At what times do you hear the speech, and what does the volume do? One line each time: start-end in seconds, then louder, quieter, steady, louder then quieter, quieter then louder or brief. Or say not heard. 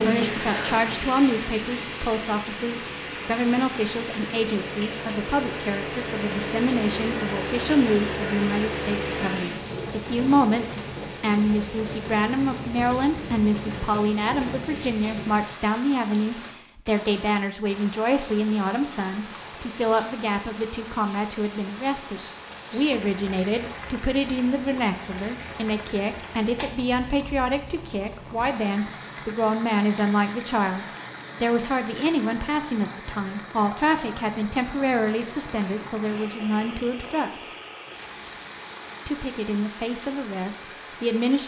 0.0-37.4 steady
39.0-41.4 brief.